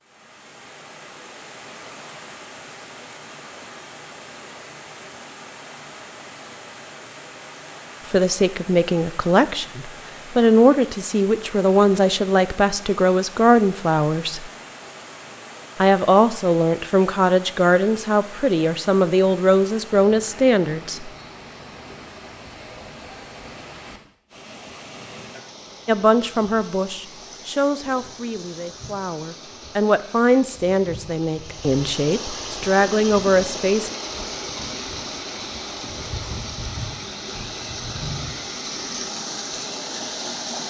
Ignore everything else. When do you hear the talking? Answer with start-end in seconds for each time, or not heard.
8.1-14.5, 15.8-21.1, 25.9-34.0.